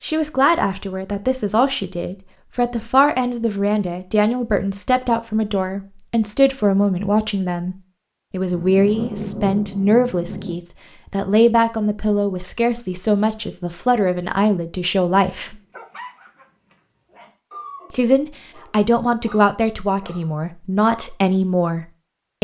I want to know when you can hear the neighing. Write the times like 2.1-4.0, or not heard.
not heard.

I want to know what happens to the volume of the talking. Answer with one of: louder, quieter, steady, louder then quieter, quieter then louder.
steady.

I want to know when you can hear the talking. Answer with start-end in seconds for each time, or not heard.
0.0-15.6, 17.9-22.3.